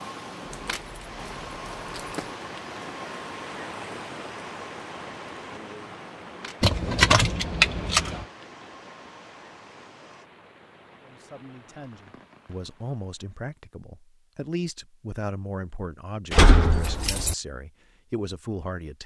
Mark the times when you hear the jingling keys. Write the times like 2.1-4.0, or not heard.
0.5-2.3, 6.6-8.2, 16.3-17.4.